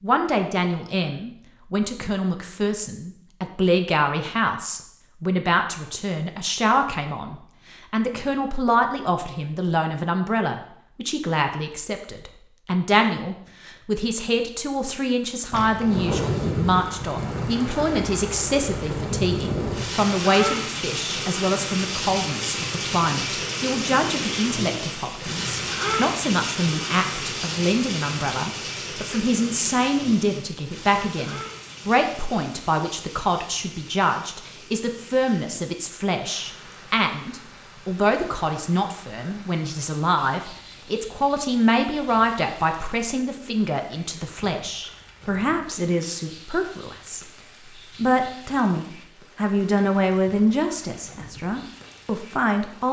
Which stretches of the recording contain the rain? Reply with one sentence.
The rain can be heard from 15.5 to 52.8 s.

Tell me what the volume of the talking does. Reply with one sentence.
The volume of the talking stays about the same.